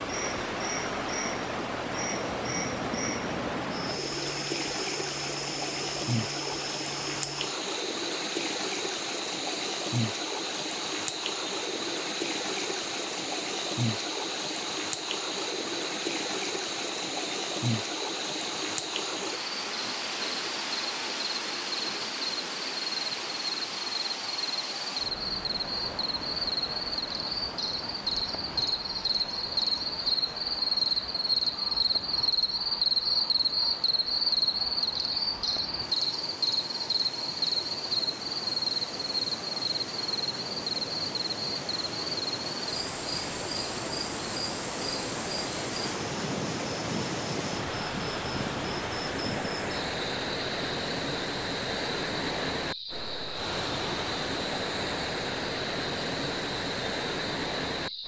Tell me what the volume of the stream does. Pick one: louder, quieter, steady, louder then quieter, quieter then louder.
quieter then louder.